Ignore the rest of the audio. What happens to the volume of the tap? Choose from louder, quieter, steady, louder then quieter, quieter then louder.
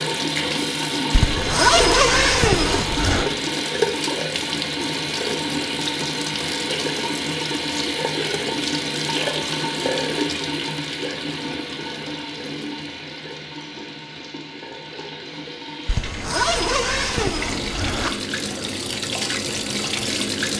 quieter then louder.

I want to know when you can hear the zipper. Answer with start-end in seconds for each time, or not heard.
1.1-3.3, 15.8-18.1.